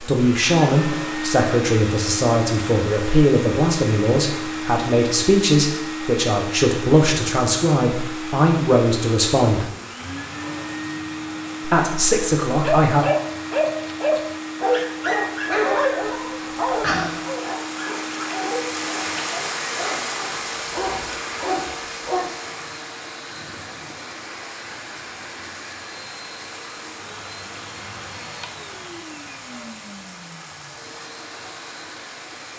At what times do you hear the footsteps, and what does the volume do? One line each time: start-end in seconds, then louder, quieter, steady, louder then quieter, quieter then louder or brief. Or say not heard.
not heard.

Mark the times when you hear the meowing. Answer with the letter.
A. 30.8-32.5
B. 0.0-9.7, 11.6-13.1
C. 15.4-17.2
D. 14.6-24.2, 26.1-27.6
C.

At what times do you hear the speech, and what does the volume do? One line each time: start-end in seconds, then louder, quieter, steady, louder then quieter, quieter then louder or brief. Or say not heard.
0.0-9.7 steady
11.6-13.1 brief.